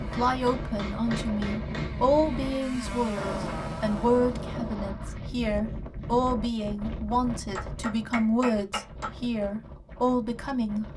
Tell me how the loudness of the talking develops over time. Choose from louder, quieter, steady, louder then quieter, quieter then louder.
steady.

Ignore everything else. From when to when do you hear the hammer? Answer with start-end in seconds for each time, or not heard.
0.1-2.0, 7.5-9.1.